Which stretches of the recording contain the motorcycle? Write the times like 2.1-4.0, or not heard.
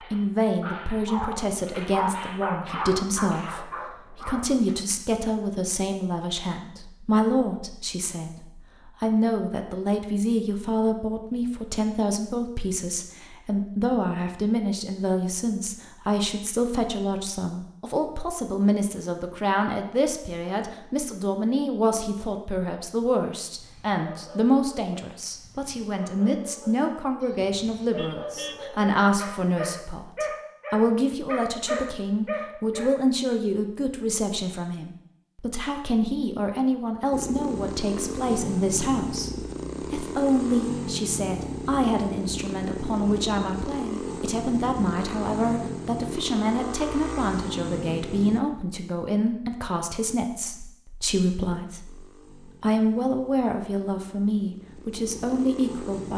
37.1-48.4, 51.9-56.1.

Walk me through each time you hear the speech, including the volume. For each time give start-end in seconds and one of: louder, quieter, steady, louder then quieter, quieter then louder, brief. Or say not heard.
0.0-56.1 steady.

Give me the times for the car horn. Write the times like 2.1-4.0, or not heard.
27.9-28.6.